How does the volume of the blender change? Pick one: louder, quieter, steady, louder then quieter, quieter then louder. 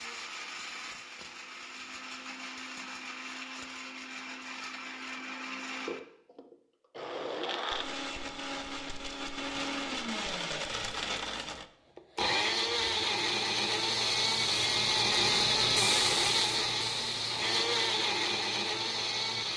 louder.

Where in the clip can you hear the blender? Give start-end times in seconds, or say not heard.
0.0-19.5.